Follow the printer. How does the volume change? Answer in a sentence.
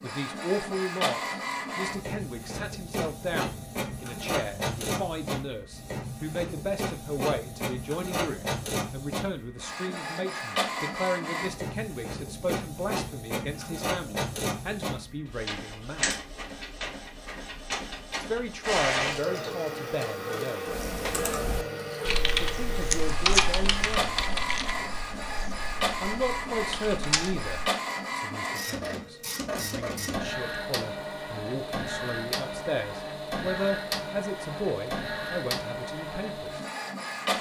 The loudness of the printer stays about the same.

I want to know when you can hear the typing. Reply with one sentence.
The typing can be heard from 20.6 to 27.5 s.